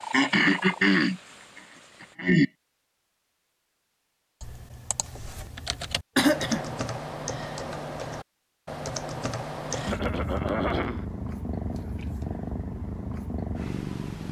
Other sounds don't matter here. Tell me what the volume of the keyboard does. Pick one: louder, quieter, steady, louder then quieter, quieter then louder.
louder.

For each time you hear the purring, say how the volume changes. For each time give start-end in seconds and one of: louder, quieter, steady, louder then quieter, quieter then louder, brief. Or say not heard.
0.0-2.1 brief
9.7-14.2 steady.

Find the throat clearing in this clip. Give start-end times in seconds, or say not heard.
0.1-1.2, 2.0-2.5, 6.2-6.7, 9.8-11.1.